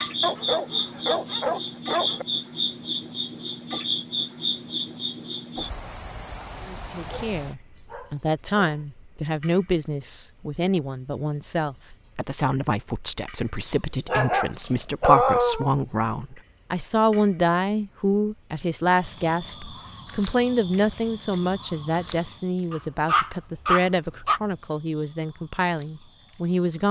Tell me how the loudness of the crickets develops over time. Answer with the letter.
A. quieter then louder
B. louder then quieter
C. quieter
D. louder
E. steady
C.